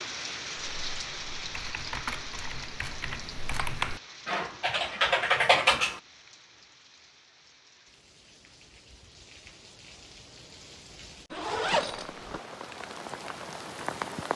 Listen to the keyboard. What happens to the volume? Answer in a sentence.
The loudness of the keyboard goes up.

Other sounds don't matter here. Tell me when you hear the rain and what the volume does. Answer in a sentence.
You can hear the rain from 0.0 to 14.3 s, getting quieter then louder.